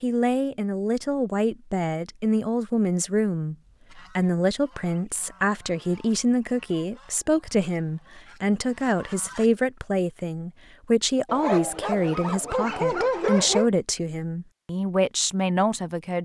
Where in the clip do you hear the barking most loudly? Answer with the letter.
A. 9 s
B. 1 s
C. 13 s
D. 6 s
C.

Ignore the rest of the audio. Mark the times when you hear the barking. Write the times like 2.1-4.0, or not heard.
11.2-13.7.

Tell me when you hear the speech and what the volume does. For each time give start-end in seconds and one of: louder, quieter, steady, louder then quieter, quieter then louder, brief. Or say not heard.
0.0-16.1 steady.